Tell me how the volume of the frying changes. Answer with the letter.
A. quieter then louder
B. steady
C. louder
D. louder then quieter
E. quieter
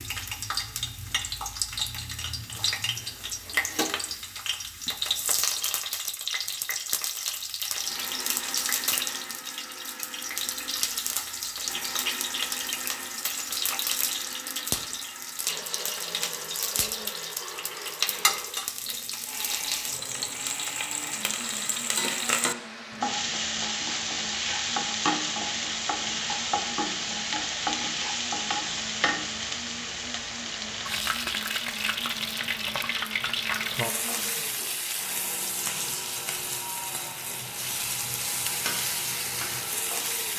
B.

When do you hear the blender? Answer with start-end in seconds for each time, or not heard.
7.8-40.3.